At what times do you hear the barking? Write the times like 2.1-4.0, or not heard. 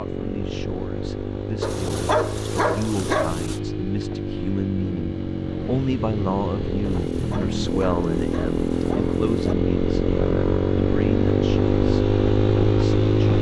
1.6-3.6, 6.8-9.6.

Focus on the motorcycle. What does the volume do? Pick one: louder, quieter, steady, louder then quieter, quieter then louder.
louder.